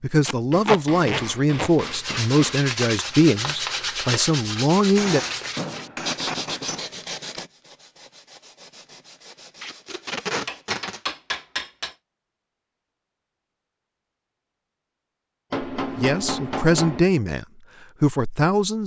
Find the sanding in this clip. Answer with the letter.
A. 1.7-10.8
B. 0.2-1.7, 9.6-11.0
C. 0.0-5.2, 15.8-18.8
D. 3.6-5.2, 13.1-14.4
A.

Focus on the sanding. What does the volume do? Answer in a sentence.
The volume of the sanding goes down.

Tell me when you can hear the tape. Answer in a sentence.
You can hear the tape from 0.2 to 1.7 s and from 9.6 to 11.0 s.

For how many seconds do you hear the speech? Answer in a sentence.
You can hear the speech for 8 seconds altogether.